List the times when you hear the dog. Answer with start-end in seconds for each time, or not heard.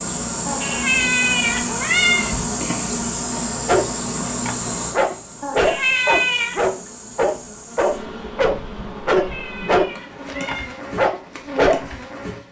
3.6-11.9.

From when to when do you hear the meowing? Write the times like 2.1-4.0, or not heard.
0.5-2.4, 5.4-6.5, 9.2-10.8.